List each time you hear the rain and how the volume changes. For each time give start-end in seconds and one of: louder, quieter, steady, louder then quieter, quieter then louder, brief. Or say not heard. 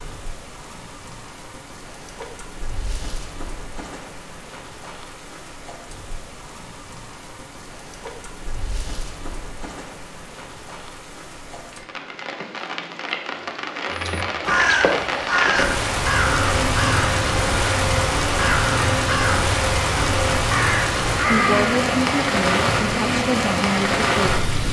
0.0-24.6 louder.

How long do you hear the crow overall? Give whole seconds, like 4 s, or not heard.
8 s.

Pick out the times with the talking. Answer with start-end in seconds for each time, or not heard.
21.2-24.4.